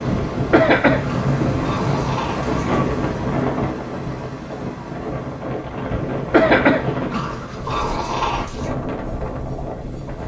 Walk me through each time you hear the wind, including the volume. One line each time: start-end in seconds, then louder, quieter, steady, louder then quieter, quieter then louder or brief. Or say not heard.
0.0-10.2 quieter.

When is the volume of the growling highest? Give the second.
8 s.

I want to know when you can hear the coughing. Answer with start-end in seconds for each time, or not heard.
0.1-1.1, 5.9-7.2.